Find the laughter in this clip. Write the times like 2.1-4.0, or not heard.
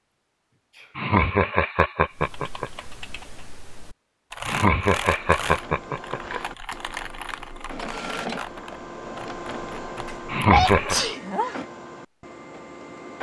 0.9-2.7, 4.5-6.4, 10.2-10.9.